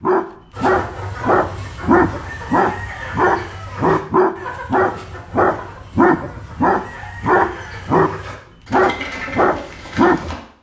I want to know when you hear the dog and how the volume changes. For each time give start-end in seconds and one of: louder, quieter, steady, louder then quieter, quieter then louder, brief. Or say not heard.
0.0-8.1 steady
8.7-10.3 brief.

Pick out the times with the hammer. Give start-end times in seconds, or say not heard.
not heard.